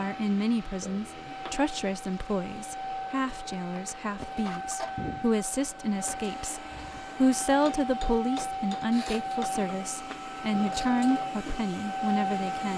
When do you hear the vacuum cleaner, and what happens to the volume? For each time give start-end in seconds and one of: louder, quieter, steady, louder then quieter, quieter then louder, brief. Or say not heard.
0.0-12.7 louder.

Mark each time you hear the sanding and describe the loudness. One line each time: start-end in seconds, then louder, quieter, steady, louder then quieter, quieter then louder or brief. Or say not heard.
not heard.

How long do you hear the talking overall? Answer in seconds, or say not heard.
13 s.